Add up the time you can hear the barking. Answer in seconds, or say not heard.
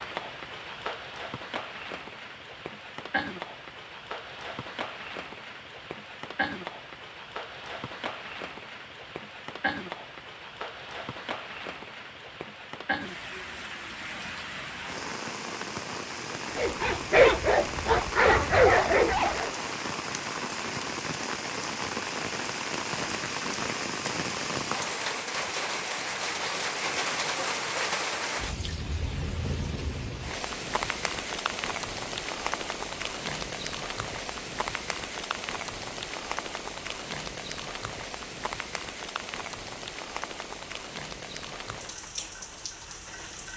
3 s.